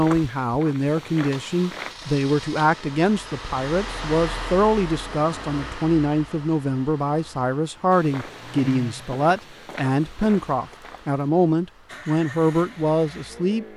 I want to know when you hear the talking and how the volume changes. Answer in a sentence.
The talking can be heard from 0.0 to 13.7 s, at a steady volume.